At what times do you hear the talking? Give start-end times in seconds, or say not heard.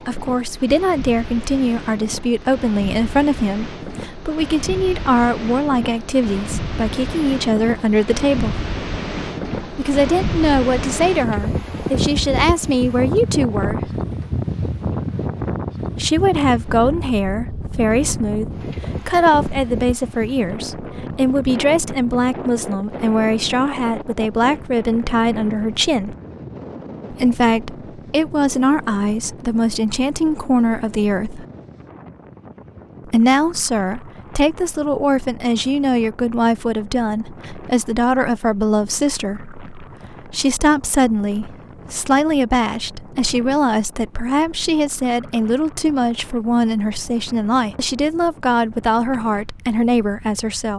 0.1-8.7, 9.8-13.9, 15.9-26.1, 27.1-31.4, 33.0-50.7.